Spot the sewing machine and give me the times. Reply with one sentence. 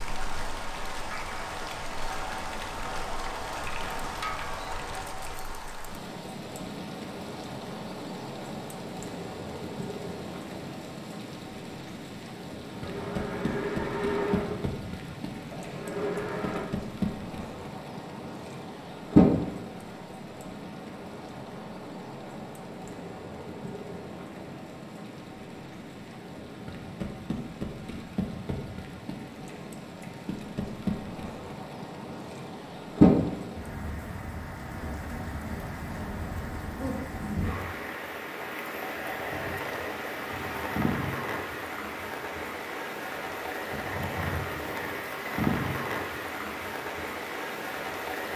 You can hear the sewing machine from 12.7 to 16.7 s.